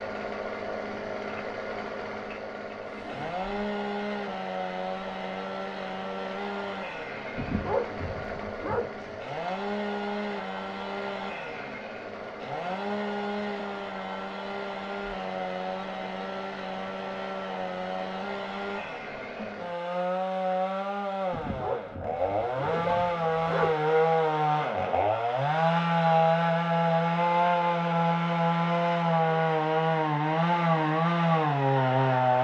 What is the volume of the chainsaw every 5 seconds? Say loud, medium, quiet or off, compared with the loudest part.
medium, medium, medium, medium, loud, loud, loud.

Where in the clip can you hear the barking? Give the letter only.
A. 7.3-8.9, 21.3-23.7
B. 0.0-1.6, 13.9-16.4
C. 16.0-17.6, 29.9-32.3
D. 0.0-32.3
A.